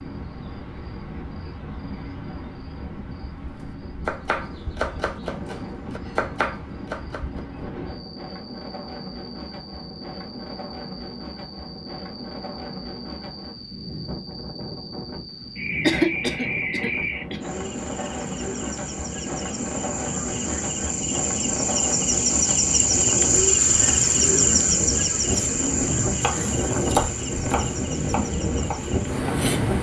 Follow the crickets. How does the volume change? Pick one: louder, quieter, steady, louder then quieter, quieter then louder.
louder.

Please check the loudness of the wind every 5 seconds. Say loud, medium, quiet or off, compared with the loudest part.
quiet, medium, medium, medium, loud, loud.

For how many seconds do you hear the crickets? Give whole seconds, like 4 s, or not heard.
30 s.